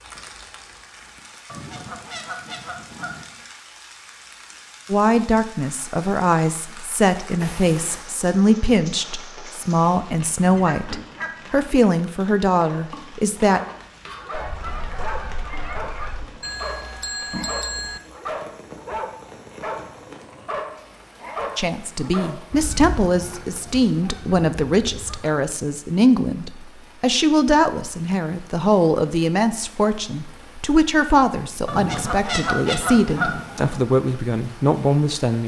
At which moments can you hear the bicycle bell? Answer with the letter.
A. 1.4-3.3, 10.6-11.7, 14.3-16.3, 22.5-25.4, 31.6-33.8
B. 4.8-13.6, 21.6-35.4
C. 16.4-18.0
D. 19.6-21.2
C.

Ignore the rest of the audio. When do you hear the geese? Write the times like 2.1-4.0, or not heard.
1.4-3.3, 10.6-11.7, 14.3-16.3, 22.5-25.4, 31.6-33.8.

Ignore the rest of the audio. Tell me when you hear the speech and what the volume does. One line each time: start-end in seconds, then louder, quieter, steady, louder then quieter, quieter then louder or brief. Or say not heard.
4.8-13.6 steady
21.6-35.4 steady.